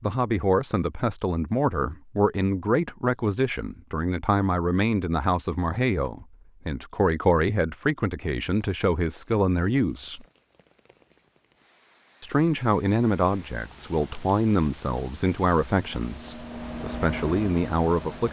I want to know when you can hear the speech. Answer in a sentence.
The speech can be heard from 0.0 to 10.2 s and from 12.2 to 18.2 s.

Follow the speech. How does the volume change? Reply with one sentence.
The volume of the speech stays about the same.